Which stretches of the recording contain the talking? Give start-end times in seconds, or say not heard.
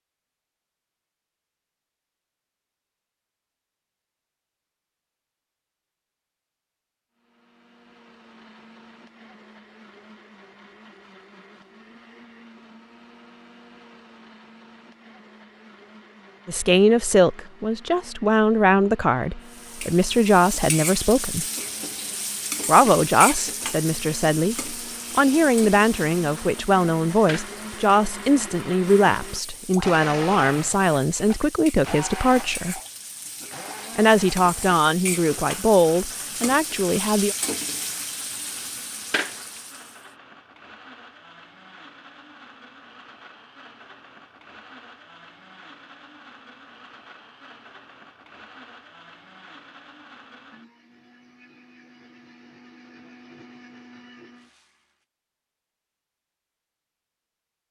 16.4-21.4, 22.6-32.8, 34.0-37.4.